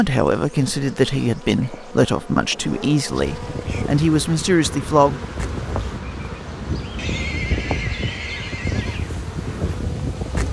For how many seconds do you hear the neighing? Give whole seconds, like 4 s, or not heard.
2 s.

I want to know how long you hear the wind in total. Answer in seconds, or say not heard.
7 s.